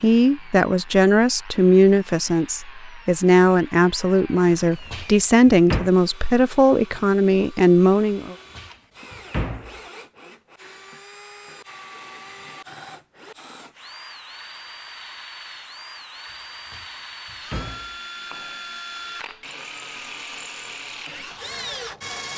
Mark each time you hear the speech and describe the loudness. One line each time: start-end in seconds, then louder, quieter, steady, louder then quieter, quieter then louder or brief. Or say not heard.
0.0-8.3 steady.